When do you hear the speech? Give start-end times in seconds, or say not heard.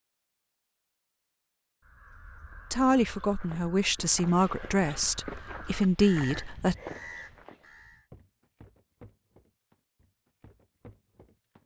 2.7-6.8.